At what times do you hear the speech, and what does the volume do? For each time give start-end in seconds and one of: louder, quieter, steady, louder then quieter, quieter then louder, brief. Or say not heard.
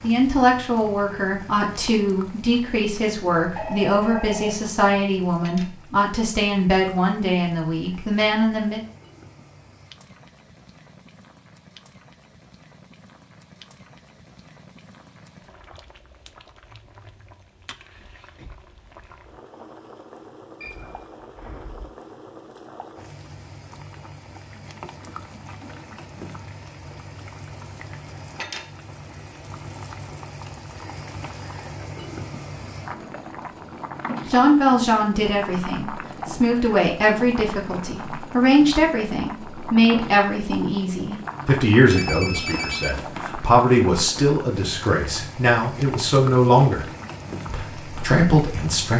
0.0-8.8 steady
34.2-46.9 steady
47.5-48.9 brief.